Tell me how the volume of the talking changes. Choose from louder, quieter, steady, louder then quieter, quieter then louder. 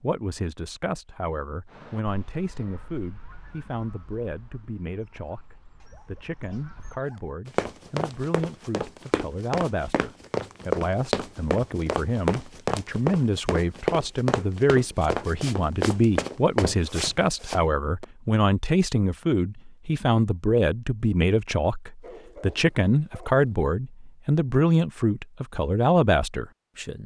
louder.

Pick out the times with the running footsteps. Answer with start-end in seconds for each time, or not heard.
7.5-18.1.